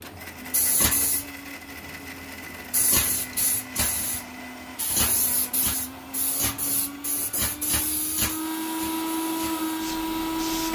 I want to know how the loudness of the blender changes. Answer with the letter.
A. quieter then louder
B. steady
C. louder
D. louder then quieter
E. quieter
C.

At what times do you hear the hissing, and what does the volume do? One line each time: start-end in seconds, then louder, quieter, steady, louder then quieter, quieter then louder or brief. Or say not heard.
0.0-10.6 quieter.